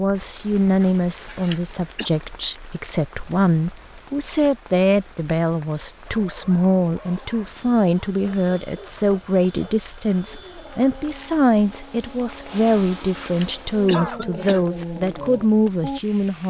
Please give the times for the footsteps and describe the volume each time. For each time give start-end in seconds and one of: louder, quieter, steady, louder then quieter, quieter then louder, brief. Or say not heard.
not heard.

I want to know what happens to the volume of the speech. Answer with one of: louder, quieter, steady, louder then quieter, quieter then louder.
steady.